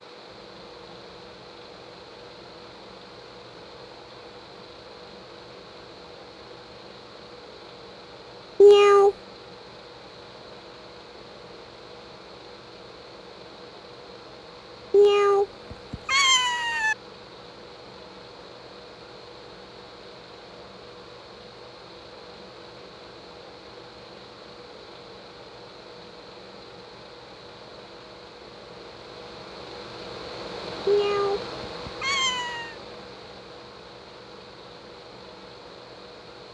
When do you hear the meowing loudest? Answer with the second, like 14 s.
9 s.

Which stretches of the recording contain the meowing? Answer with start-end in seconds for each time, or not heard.
8.6-9.2, 14.9-16.9, 30.9-32.8.